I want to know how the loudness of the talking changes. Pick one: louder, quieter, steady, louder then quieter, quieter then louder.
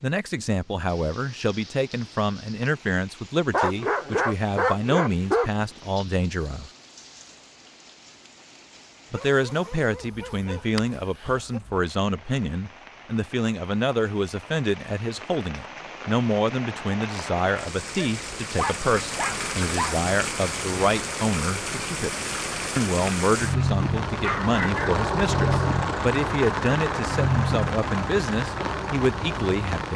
steady.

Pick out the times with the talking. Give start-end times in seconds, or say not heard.
0.0-6.7, 9.1-22.1, 22.8-29.9.